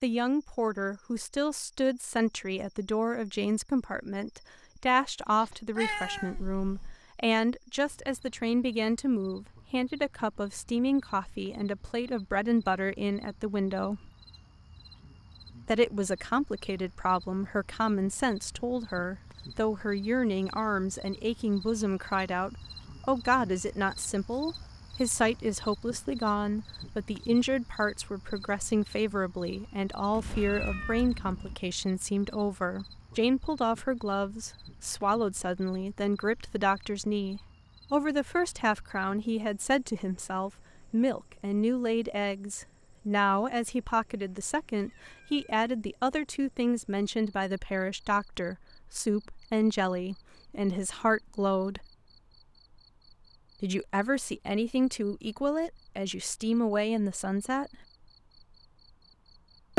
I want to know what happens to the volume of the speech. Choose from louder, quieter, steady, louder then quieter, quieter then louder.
steady.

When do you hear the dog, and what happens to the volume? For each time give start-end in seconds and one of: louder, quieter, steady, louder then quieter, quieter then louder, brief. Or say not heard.
not heard.